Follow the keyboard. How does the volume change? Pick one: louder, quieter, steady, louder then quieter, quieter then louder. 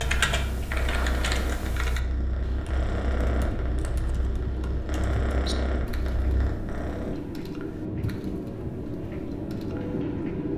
quieter.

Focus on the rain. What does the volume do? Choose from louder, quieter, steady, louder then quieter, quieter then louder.
louder.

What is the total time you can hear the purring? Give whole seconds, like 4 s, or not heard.
7 s.